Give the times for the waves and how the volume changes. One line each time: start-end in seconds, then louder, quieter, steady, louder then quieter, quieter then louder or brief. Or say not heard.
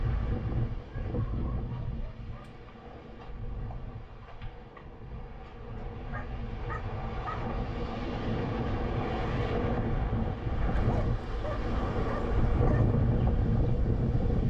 0.0-14.4 quieter then louder.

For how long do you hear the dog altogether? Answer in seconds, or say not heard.
5 s.